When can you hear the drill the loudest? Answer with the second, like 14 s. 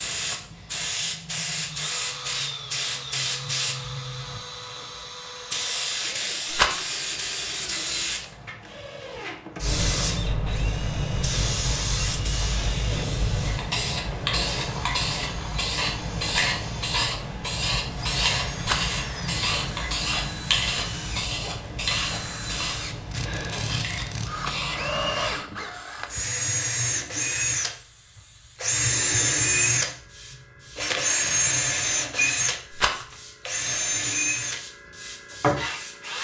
29 s.